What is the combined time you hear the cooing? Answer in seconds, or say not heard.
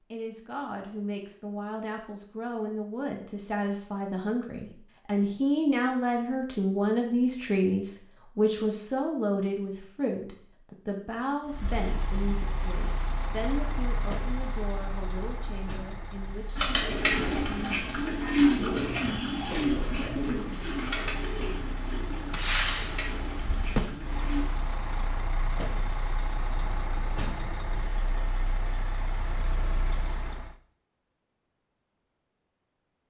8 s.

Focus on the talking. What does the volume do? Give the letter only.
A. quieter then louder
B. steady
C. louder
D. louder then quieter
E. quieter
D.